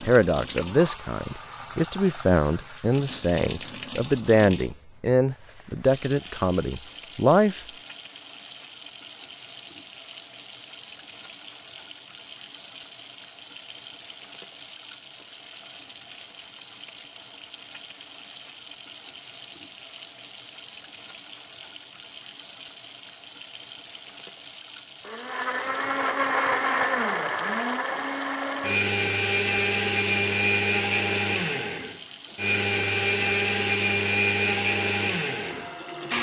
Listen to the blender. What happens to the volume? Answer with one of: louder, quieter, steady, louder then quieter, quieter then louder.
steady.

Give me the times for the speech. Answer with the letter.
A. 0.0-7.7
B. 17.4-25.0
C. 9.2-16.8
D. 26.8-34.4
A.